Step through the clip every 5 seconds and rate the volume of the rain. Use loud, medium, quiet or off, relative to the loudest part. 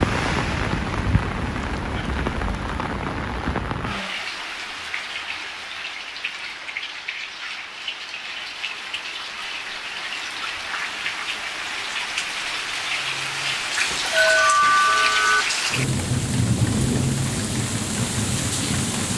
loud, medium, loud, loud.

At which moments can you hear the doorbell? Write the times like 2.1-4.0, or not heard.
13.9-15.4.